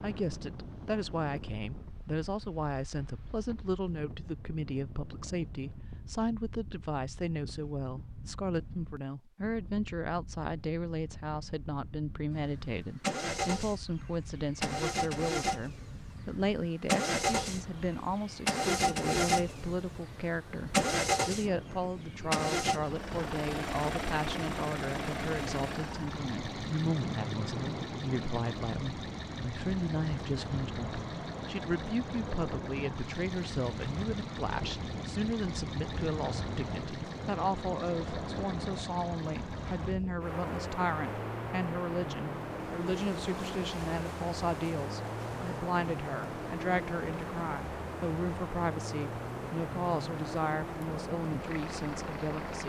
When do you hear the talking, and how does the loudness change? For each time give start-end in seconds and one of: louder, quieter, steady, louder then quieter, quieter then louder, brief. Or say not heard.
0.0-52.6 steady.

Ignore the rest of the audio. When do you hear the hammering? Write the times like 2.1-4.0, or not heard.
not heard.